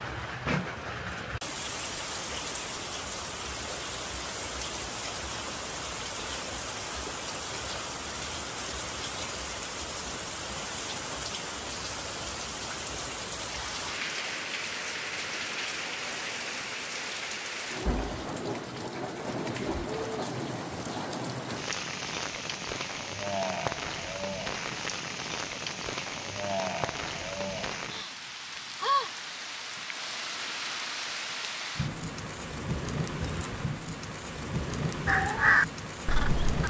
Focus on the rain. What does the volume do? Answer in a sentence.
The loudness of the rain stays about the same.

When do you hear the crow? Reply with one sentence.
You can hear the crow from 35.0 to 36.6 s.